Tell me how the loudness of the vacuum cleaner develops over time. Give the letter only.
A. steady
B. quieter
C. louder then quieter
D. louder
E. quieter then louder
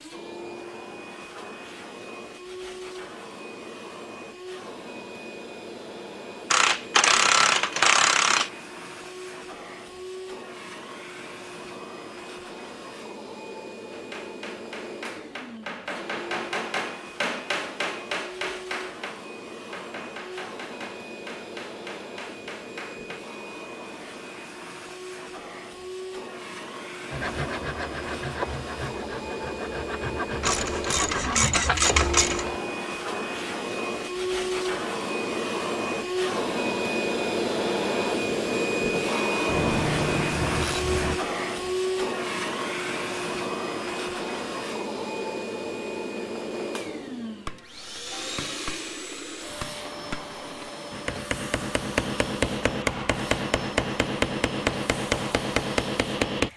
C.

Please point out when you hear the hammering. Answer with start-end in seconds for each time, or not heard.
13.9-23.2, 47.5-56.5.